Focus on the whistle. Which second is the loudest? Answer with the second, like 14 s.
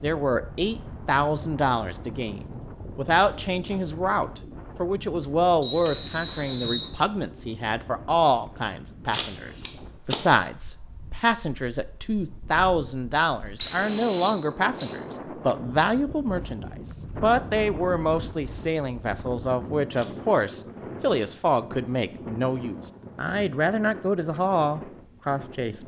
14 s.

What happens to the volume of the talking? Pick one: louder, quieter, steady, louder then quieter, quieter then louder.
steady.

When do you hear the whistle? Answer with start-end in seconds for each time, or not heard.
5.6-6.9, 13.6-14.9.